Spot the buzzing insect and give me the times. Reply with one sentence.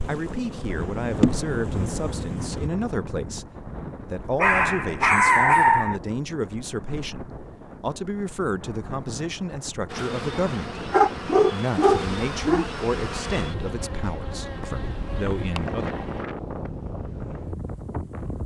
The buzzing insect can be heard from 0.0 to 2.7 s and from 9.8 to 16.2 s.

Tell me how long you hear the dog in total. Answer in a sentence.
You can hear the dog for 4 seconds altogether.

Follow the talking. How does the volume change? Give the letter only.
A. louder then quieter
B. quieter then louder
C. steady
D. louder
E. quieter
C.